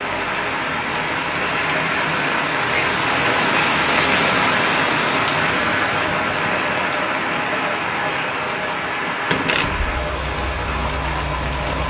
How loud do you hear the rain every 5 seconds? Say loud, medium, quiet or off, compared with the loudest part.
loud, loud, medium.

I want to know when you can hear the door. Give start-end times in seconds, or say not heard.
9.3-9.9.